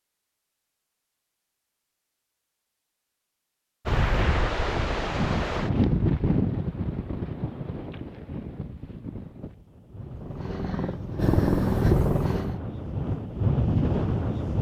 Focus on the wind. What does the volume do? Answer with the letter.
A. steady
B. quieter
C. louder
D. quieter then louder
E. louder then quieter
D.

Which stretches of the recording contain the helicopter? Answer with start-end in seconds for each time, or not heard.
10.0-12.6.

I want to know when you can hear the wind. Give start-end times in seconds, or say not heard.
3.9-14.5.